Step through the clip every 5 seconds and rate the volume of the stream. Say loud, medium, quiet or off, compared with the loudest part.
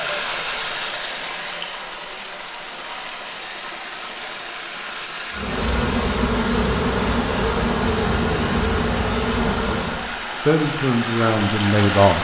loud, medium, loud.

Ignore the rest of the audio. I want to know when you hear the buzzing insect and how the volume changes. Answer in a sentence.
You can hear the buzzing insect from 5.3 to 10.1 s, at a steady volume.